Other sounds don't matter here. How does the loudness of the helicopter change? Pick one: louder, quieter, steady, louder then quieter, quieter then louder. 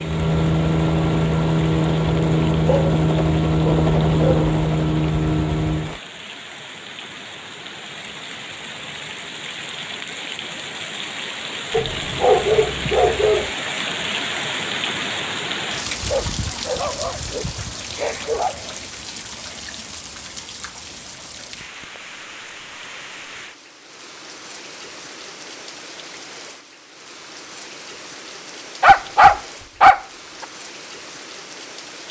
steady.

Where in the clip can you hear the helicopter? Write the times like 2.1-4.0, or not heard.
0.0-6.0.